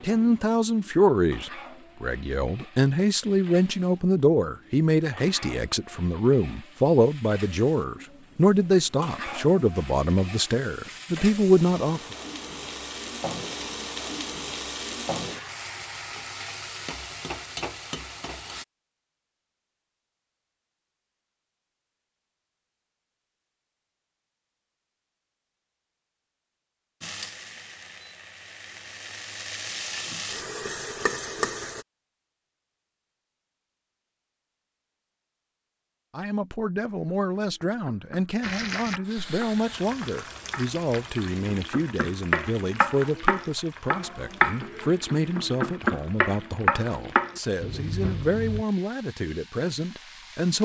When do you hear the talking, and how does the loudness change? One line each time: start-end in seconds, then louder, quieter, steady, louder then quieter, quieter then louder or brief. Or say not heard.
0.0-12.0 steady
36.1-50.5 steady.